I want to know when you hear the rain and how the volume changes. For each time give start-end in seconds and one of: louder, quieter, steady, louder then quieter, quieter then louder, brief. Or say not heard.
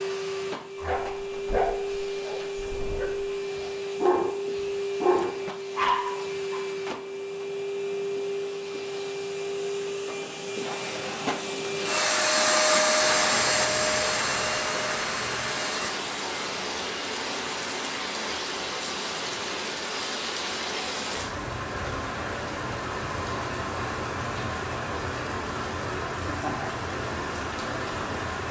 12.9-28.4 steady.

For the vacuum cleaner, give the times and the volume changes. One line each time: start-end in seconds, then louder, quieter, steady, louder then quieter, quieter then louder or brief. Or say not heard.
0.0-15.9 louder.